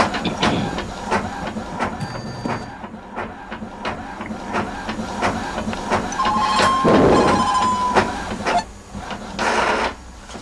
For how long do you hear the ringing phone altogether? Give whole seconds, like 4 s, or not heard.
3 s.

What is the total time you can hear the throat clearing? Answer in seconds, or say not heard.
2 s.